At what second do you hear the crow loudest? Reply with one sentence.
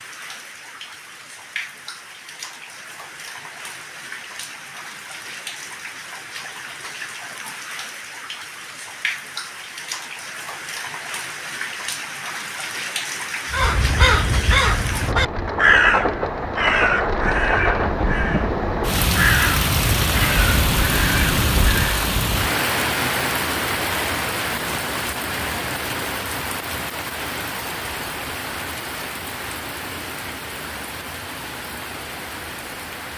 The loudest moment of the crow is at 16 seconds.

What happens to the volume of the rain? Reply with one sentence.
The loudness of the rain goes up, then down.